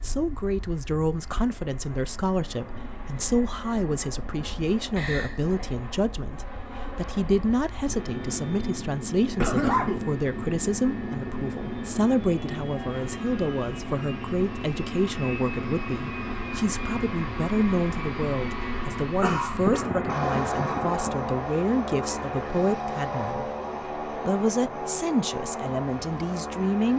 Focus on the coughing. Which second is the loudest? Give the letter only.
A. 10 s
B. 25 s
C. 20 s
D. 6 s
A.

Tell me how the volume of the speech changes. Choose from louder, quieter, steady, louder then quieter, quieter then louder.
steady.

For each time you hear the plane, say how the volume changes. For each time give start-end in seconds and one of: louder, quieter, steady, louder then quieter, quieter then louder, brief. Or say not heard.
0.0-26.9 louder.